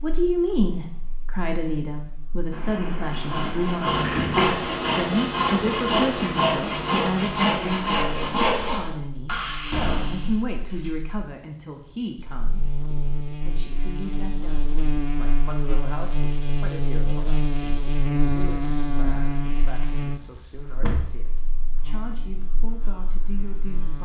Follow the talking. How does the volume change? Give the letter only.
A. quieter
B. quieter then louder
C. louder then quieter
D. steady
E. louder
A.